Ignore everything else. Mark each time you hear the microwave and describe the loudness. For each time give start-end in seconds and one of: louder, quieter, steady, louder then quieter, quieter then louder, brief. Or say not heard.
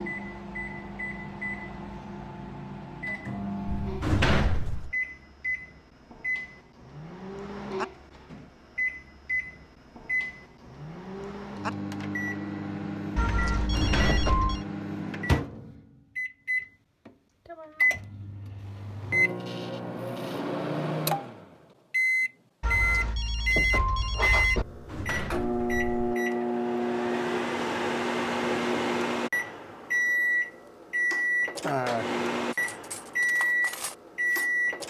0.0-34.8 louder.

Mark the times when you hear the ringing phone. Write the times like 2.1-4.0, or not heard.
13.2-14.7, 22.6-24.6.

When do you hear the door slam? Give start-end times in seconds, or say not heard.
3.6-4.9, 13.6-14.4, 24.6-26.1.